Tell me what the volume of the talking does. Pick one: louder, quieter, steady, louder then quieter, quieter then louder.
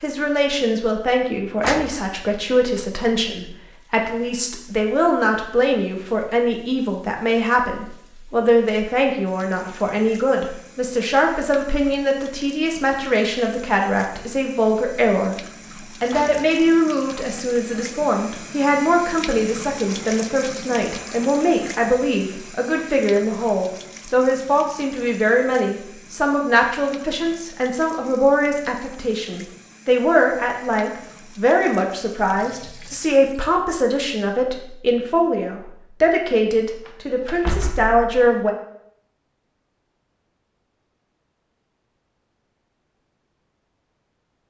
steady.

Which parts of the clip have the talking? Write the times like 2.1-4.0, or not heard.
0.0-15.3, 16.0-38.5.